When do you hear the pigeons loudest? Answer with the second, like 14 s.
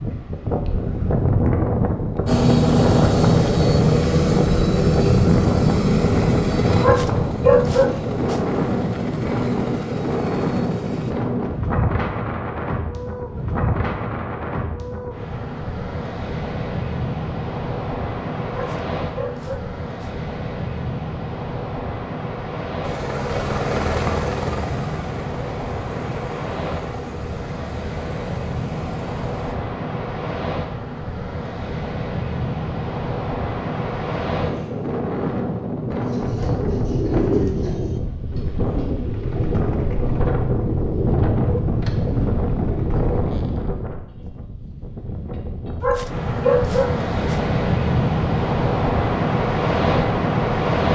37 s.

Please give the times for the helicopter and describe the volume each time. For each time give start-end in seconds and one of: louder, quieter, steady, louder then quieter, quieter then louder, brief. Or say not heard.
2.2-11.2 quieter
22.8-29.6 quieter.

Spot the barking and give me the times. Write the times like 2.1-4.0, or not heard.
6.8-8.4, 18.5-20.1, 45.8-47.4.